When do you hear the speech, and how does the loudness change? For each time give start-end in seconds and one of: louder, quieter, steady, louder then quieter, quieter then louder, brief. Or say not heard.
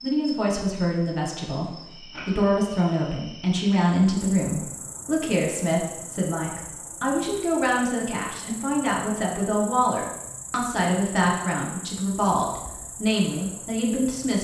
0.0-14.4 steady.